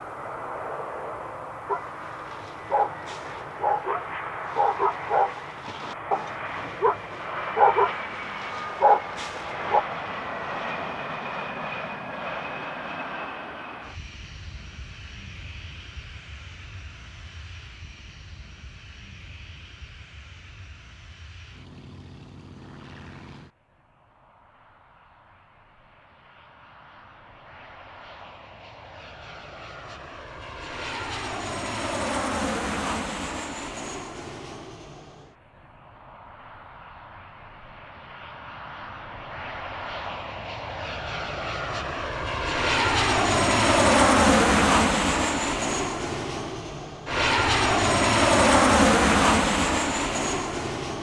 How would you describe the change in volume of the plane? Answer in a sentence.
The loudness of the plane goes down, then up.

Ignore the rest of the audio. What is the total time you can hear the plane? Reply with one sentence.
The plane can be heard for 51 seconds in total.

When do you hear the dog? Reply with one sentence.
You can hear the dog from 1.6 to 9.8 s.